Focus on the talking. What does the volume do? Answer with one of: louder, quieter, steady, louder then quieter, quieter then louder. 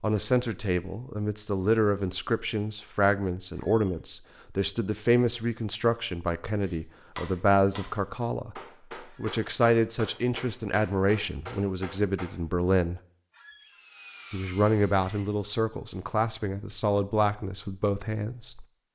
steady.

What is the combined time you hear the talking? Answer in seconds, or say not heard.
17 s.